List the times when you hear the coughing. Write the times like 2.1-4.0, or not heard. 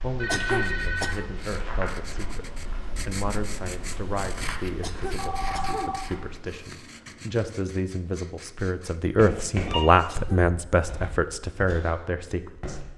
0.2-1.3, 4.8-6.0, 10.1-10.5.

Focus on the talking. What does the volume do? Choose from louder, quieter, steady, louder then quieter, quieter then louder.
louder.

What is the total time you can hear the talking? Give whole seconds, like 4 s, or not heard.
13 s.